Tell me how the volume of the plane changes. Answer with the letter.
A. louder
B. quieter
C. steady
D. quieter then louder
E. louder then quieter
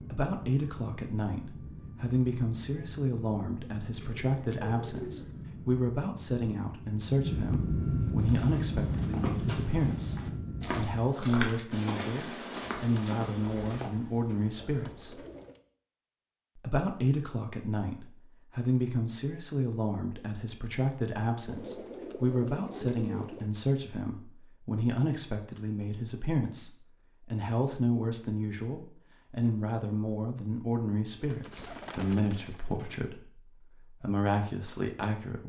A.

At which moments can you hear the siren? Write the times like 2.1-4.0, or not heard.
not heard.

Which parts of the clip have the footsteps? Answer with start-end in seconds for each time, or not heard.
8.2-13.9.